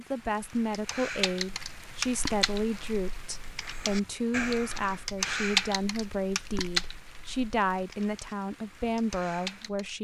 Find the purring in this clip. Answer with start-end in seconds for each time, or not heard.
not heard.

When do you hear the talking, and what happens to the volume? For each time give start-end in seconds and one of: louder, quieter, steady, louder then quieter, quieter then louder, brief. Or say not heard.
0.0-9.9 steady.